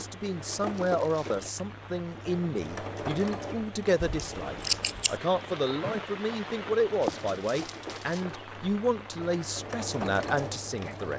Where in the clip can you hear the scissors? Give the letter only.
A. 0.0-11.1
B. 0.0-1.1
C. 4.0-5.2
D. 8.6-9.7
C.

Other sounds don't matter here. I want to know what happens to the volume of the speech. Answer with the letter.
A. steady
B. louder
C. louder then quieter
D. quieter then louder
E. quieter
A.